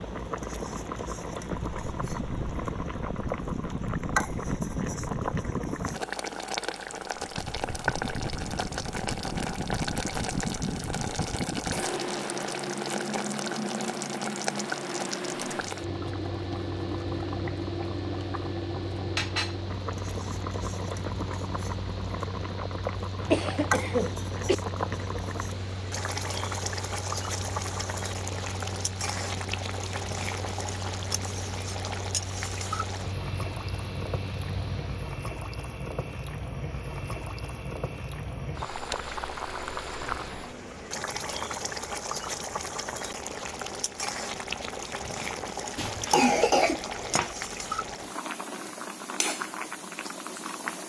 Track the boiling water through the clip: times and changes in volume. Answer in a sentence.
The boiling water can be heard from 0.0 to 50.8 s, at a steady volume.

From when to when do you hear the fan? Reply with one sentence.
The fan can be heard from 0.0 to 35.2 s.